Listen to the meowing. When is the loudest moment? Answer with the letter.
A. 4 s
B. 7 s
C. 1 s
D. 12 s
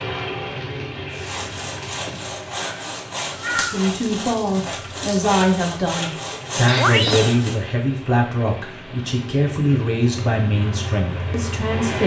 B.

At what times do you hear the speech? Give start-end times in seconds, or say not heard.
3.5-12.0.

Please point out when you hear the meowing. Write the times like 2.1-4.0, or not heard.
2.6-3.8, 6.7-7.3.